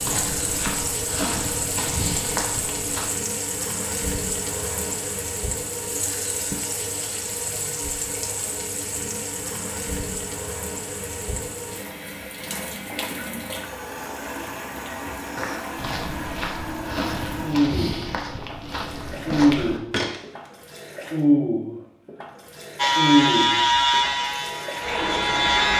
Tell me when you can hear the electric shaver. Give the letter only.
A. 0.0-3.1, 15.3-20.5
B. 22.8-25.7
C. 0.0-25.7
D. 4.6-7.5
B.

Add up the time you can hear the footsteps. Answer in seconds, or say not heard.
8 s.